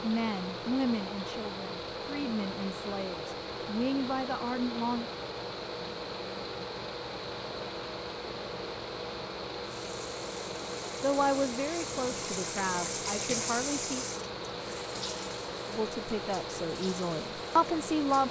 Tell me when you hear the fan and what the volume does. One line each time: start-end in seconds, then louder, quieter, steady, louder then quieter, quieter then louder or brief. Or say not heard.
0.0-18.2 steady.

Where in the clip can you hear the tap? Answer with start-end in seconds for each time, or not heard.
9.7-18.2.